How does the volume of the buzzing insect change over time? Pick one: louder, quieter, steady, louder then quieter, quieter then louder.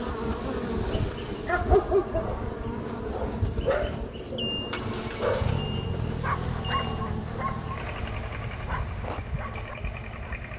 quieter.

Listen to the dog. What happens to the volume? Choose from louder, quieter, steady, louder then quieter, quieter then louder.
quieter.